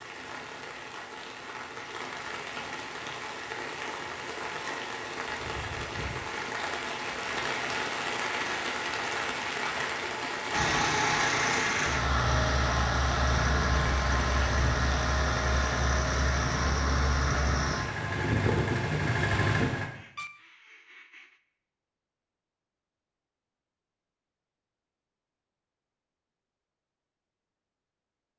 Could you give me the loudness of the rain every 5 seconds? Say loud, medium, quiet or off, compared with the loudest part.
medium, loud, loud, medium, off, off.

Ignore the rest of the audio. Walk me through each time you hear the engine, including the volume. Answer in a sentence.
You can hear the engine from 10.5 to 19.9 s, at a steady volume.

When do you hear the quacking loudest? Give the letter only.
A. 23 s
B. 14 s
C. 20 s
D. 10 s
C.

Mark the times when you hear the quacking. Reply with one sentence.
The quacking can be heard from 19.8 to 21.4 s.